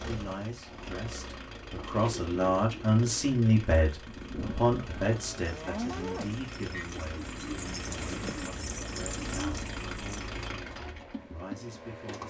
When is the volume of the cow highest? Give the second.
6 s.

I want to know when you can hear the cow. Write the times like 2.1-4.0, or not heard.
4.4-6.8.